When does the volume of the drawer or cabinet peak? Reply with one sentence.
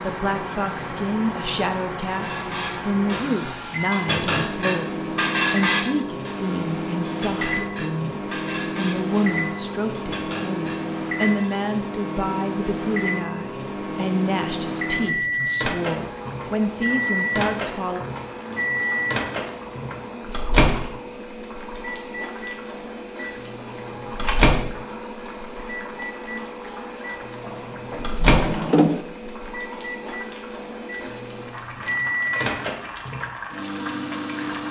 The volume of the drawer or cabinet peaks at 29 seconds.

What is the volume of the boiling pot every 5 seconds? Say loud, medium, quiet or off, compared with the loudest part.
off, off, off, loud, loud, loud, loud.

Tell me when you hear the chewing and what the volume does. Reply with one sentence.
You can't hear the chewing here.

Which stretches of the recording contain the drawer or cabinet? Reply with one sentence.
The drawer or cabinet can be heard from 27.4 to 29.0 s.